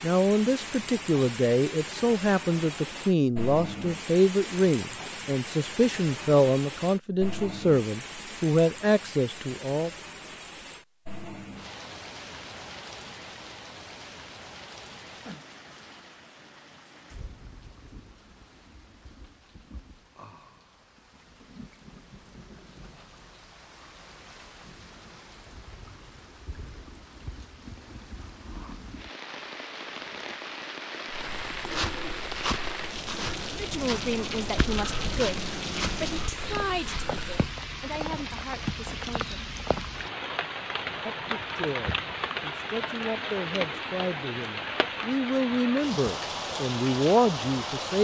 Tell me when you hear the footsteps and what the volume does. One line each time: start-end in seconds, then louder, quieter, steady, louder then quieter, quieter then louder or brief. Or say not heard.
31.1-37.5 quieter.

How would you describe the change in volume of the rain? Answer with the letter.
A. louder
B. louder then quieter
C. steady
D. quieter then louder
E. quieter
D.